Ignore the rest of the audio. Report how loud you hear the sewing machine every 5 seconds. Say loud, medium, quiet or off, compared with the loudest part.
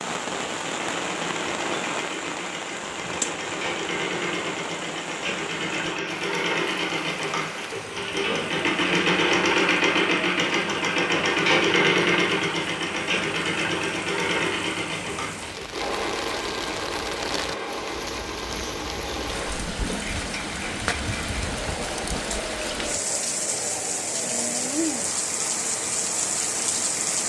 medium, loud, loud, medium, quiet, quiet.